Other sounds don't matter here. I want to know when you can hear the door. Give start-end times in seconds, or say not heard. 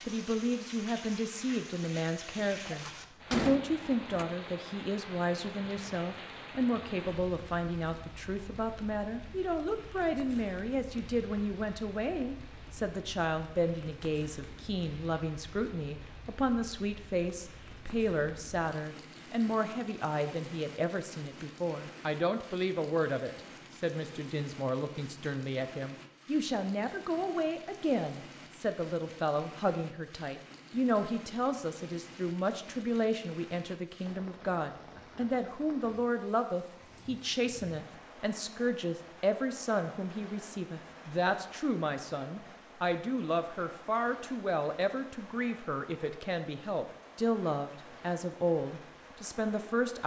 2.4-4.2.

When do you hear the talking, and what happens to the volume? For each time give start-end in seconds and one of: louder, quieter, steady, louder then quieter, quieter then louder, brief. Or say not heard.
0.1-50.0 steady.